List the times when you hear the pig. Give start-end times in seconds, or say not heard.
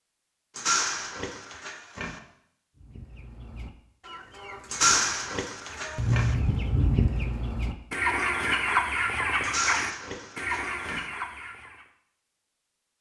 0.6-2.2, 4.7-6.3, 9.4-11.1.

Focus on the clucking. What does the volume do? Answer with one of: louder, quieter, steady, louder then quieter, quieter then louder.
louder then quieter.